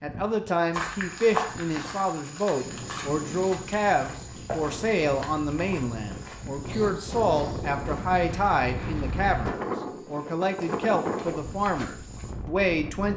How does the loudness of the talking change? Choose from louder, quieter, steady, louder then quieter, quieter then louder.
steady.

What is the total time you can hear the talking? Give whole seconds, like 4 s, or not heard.
13 s.